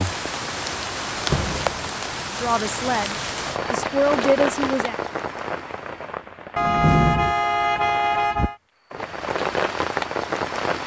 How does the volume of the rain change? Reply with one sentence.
The loudness of the rain goes down, then up.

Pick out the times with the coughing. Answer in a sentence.
You can't hear the coughing here.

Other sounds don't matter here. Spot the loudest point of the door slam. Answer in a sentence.
The loudest moment of the door slam is at 7 seconds.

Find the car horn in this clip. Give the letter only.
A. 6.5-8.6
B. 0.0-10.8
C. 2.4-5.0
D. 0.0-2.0
A.